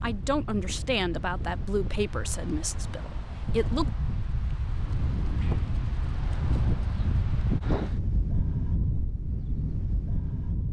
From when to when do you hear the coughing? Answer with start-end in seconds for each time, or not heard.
not heard.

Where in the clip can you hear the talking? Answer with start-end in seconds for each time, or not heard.
0.0-3.9.